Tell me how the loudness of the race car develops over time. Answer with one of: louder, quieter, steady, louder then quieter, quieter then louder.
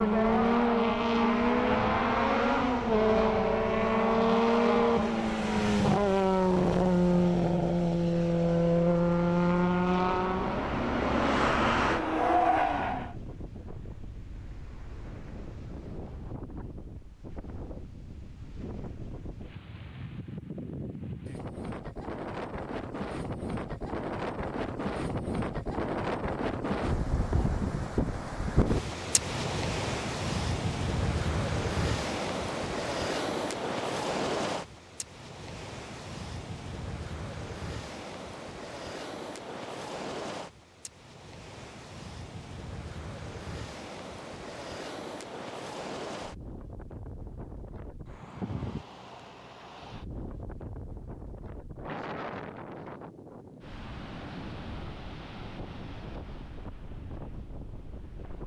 steady.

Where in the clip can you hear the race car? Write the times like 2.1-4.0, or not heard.
0.0-13.2.